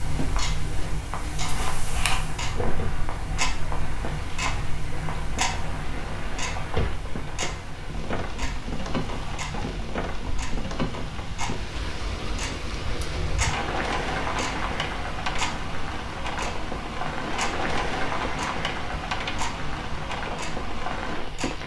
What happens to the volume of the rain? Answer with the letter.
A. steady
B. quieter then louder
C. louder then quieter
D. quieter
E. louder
E.